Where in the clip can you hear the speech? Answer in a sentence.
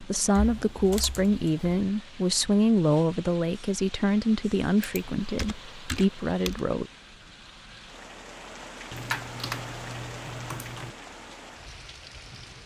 You can hear the speech from 0.0 to 6.9 s.